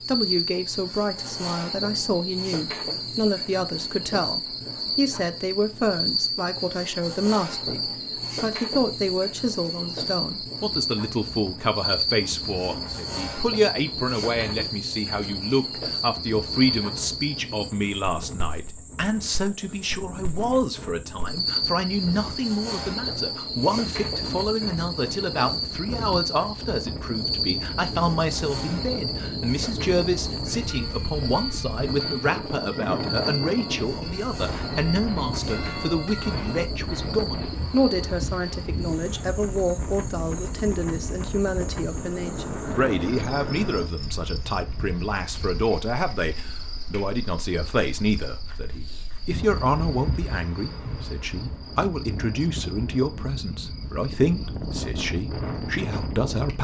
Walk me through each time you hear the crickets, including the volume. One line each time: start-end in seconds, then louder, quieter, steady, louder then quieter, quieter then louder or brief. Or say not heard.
0.0-56.5 quieter.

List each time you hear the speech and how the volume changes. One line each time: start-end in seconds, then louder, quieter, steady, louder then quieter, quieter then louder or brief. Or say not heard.
0.1-56.5 steady.